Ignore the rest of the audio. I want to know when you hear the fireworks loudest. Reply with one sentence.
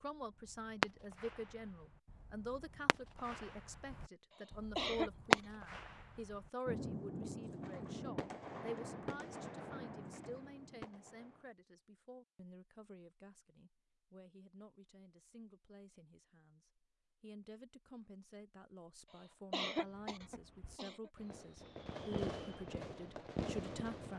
The volume of the fireworks peaks at 5 seconds.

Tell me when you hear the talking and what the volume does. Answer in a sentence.
You can hear the talking from 0.0 to 24.1 s, getting quieter then louder.